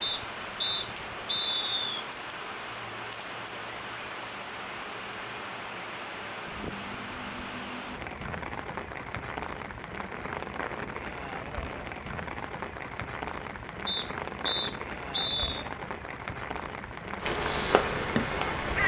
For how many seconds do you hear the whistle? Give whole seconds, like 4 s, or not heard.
4 s.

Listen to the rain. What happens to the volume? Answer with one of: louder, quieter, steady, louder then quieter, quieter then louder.
steady.